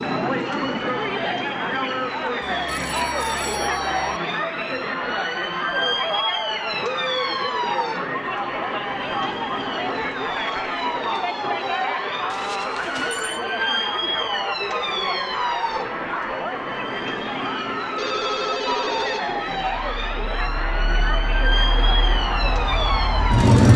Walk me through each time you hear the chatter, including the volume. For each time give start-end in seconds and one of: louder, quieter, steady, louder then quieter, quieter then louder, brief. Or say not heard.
0.0-23.7 steady.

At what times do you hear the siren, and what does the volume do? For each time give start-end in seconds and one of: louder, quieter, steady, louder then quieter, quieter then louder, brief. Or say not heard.
0.0-23.6 steady.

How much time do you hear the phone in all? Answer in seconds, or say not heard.
4 s.